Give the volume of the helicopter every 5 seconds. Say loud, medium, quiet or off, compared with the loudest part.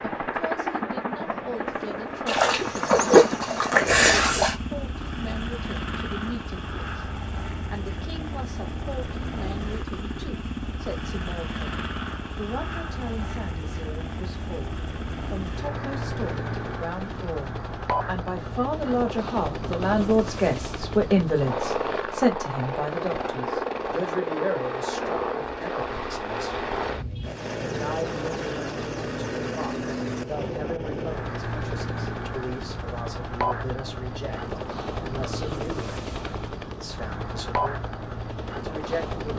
loud, medium, medium, loud, loud, loud, loud, loud.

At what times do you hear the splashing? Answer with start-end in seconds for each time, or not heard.
2.2-4.5.